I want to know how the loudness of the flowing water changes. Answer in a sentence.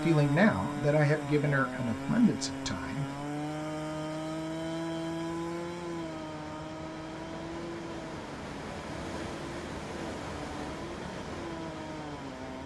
The loudness of the flowing water goes up.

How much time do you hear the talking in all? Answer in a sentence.
The talking can be heard for 3 seconds in total.